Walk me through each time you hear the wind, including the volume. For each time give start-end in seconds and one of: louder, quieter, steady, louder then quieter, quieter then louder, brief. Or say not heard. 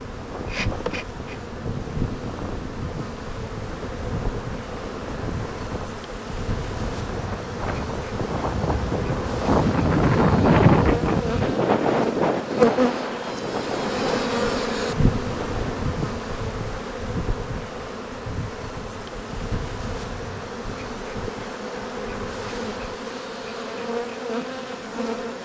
0.0-15.9 louder then quieter.